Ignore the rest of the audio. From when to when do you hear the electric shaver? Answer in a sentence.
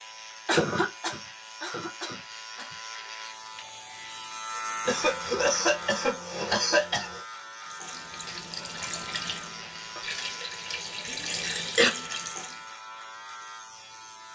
You can hear the electric shaver from 0.0 to 14.3 s.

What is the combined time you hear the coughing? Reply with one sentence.
You can hear the coughing for 5 seconds altogether.